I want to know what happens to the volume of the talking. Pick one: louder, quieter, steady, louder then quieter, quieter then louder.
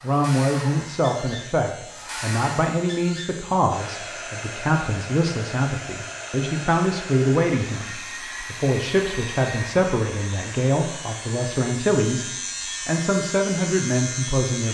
steady.